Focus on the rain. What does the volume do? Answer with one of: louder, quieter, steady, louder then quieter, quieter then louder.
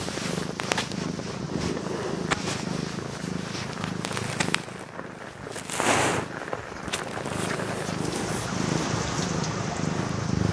louder.